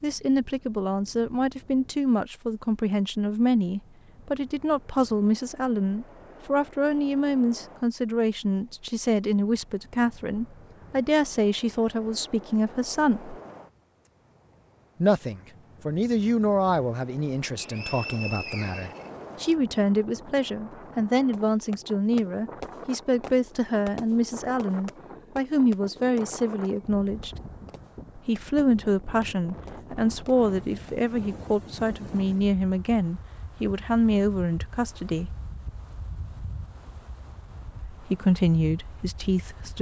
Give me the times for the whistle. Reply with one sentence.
The whistle can be heard from 17.6 to 19.6 s.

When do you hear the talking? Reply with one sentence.
The talking can be heard from 0.0 to 13.3 s, from 15.0 to 27.4 s, from 28.1 to 35.4 s and from 37.9 to 39.7 s.